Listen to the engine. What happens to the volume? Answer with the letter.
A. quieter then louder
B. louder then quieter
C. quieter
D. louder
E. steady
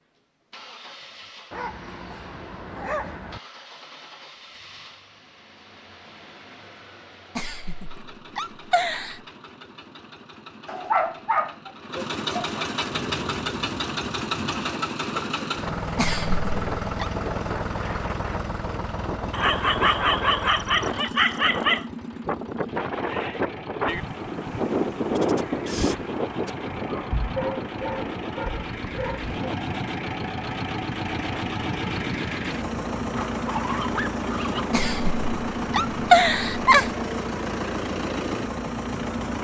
D.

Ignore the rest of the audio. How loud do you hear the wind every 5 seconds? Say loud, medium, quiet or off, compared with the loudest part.
off, off, medium, medium, loud, loud, medium, medium.